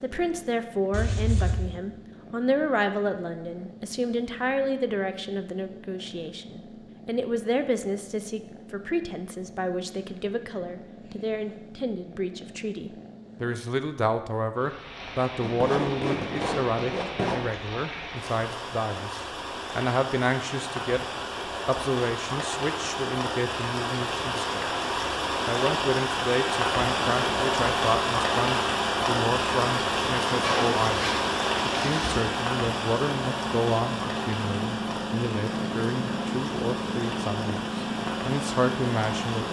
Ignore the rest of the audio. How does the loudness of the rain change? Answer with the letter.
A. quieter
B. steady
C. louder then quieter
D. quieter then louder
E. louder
C.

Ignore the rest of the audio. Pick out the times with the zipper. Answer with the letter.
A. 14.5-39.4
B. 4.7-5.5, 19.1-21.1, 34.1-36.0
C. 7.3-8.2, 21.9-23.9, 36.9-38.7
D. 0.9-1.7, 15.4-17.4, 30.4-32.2
D.